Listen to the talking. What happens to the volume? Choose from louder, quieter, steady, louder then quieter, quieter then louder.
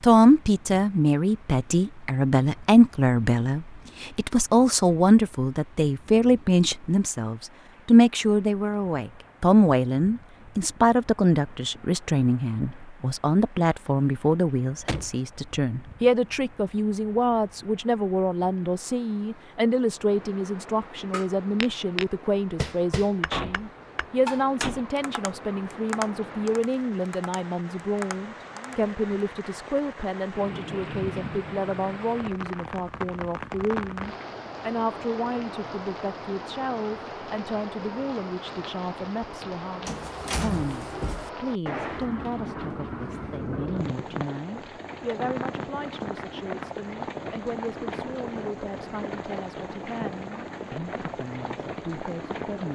quieter.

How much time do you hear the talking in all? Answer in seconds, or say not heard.
53 s.